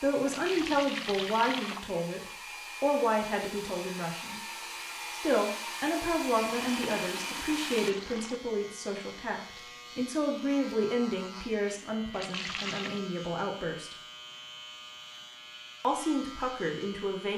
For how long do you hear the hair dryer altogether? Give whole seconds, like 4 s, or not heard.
8 s.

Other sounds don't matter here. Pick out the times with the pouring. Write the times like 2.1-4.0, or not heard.
0.2-1.9, 6.3-8.4, 12.1-13.0.